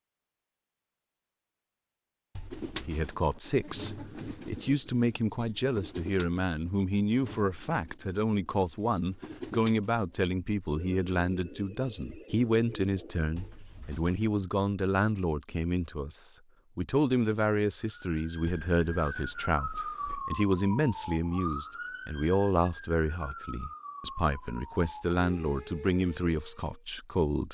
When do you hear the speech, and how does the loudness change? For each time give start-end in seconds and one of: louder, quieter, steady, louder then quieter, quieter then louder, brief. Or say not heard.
2.8-27.5 steady.